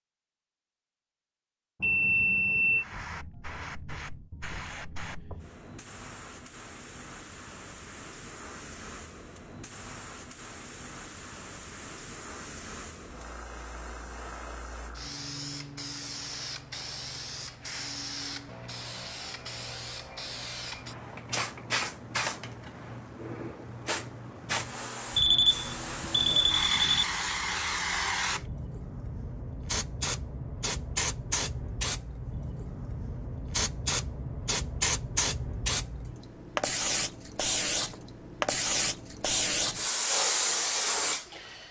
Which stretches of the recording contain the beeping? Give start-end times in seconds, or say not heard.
1.8-2.9, 25.1-27.1.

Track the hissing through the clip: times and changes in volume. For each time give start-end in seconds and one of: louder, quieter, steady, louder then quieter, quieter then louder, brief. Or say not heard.
2.8-41.6 louder.